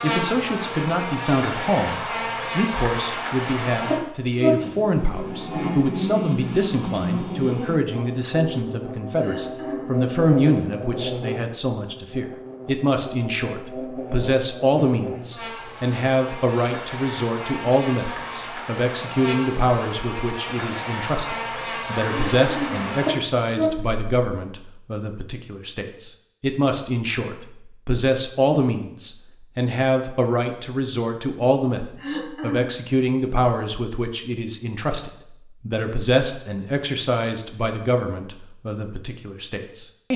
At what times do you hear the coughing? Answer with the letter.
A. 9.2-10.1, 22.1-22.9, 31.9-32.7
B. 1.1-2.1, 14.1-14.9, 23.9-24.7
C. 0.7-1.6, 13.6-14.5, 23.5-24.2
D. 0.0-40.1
A.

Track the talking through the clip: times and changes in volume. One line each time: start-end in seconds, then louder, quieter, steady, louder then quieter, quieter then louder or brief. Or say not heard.
0.0-40.1 steady.